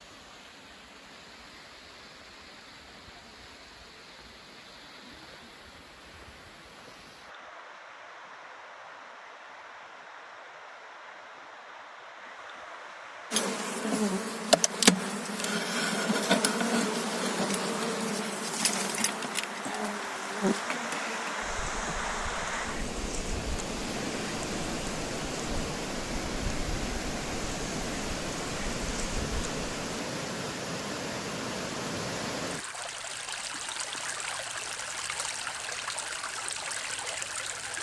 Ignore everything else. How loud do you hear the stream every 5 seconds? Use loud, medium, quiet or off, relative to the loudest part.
quiet, quiet, medium, medium, loud, loud, loud, loud.